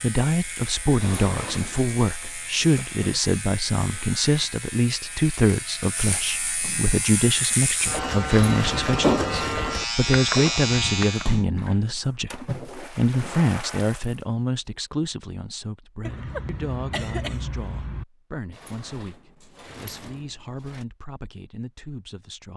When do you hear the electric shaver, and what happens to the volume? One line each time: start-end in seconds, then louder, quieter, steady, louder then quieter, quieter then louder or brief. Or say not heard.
0.0-11.4 louder.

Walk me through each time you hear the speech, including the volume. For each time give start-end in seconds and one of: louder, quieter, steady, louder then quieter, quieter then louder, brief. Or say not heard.
0.0-22.5 quieter.